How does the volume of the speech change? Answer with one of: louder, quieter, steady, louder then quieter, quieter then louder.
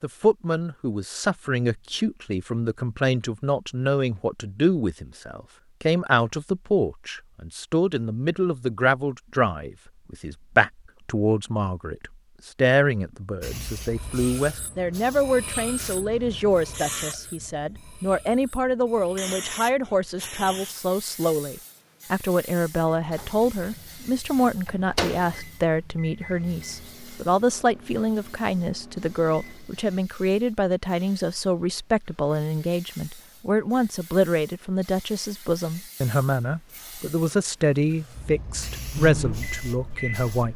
steady.